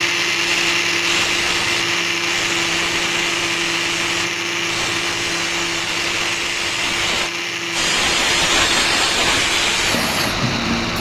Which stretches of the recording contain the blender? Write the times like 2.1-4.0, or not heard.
0.0-10.9.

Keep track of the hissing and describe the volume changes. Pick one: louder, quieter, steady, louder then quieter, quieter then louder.
louder.